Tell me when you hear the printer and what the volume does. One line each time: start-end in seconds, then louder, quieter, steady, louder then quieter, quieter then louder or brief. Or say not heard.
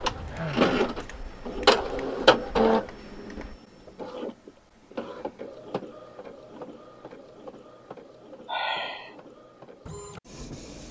0.0-10.8 quieter.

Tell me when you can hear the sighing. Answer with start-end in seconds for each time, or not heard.
0.2-0.7, 8.4-9.2.